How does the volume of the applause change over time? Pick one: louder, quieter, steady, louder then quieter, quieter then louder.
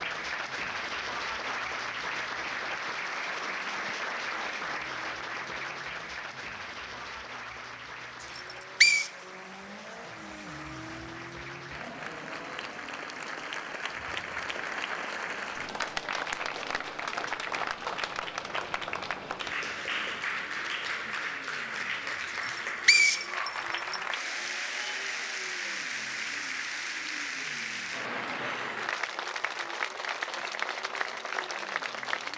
quieter then louder.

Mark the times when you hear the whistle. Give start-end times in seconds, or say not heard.
8.2-9.1, 22.4-24.0.